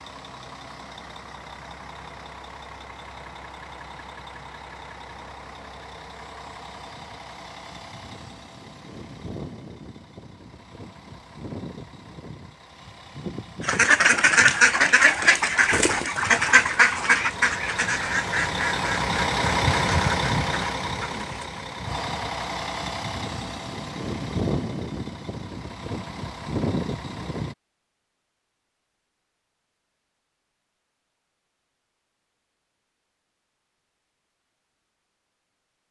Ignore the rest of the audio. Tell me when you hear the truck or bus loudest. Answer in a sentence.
The volume of the truck or bus peaks at 20 seconds.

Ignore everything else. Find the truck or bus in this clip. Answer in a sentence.
You can hear the truck or bus from 0.0 to 27.6 s.